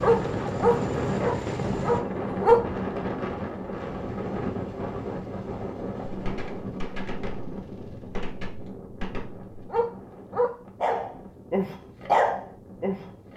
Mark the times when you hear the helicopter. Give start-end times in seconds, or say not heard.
0.0-8.2.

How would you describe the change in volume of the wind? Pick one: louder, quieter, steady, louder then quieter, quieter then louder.
quieter.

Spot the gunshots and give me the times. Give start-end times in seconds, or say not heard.
6.0-9.7.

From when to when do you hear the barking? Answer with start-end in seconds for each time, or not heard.
0.0-2.6, 9.7-13.3.